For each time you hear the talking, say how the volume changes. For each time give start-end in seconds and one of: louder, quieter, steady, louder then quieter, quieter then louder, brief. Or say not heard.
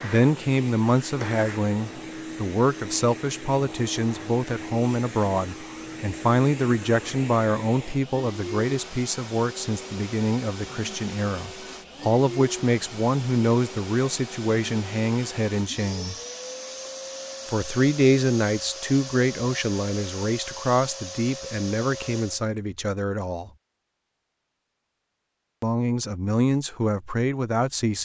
0.0-16.1 steady
17.4-23.5 quieter
25.6-28.0 brief.